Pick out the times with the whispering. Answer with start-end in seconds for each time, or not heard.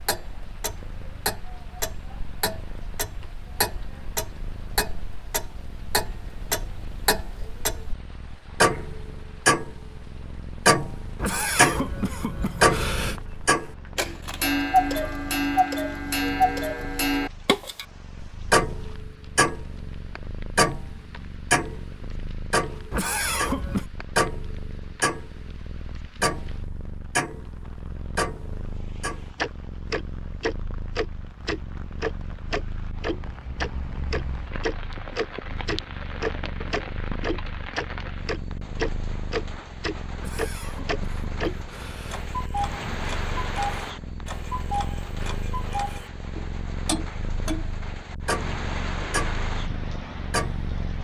not heard.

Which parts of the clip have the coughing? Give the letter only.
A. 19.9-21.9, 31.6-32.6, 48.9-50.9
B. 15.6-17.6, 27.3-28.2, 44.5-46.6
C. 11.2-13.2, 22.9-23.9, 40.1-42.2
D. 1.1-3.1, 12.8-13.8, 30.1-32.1
C.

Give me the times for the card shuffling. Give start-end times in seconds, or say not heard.
not heard.